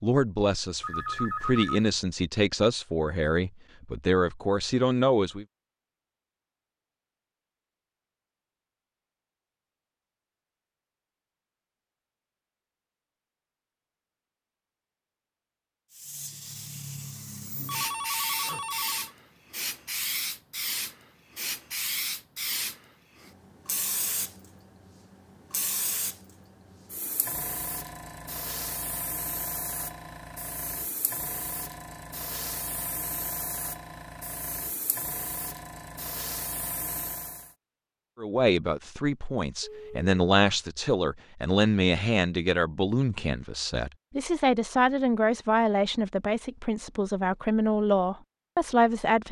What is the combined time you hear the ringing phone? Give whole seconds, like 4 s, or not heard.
3 s.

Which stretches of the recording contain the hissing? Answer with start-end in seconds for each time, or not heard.
15.9-37.5.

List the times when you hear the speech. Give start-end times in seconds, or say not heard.
0.0-5.5, 38.1-49.2.